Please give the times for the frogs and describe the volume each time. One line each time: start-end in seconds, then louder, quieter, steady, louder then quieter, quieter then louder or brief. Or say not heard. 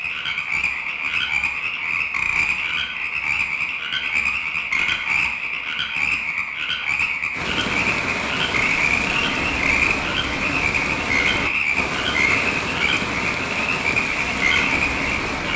0.0-15.5 steady.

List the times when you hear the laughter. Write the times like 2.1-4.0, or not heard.
not heard.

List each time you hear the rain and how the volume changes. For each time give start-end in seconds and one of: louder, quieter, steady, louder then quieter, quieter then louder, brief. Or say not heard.
7.3-15.5 steady.